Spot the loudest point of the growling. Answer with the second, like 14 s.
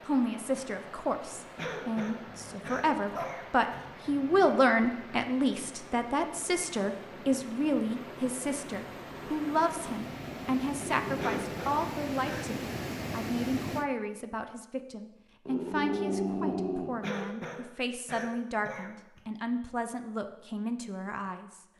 16 s.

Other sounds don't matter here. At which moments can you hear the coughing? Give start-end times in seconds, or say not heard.
1.6-3.5, 11.2-12.5, 17.0-19.2.